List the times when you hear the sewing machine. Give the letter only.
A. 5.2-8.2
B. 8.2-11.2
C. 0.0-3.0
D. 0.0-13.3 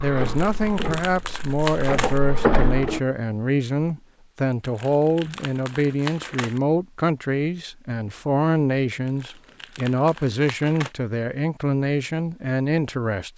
C.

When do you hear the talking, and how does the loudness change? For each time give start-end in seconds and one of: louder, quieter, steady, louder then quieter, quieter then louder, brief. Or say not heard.
0.0-13.3 steady.